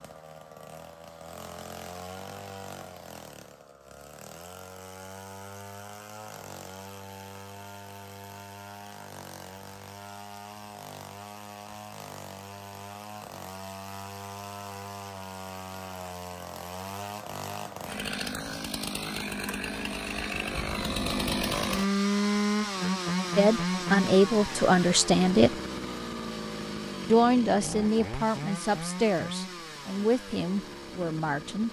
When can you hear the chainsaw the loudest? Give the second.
22 s.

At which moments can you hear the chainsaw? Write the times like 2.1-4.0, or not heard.
0.0-31.6.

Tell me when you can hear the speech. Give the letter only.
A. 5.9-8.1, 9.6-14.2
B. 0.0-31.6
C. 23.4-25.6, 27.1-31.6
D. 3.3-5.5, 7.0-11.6
C.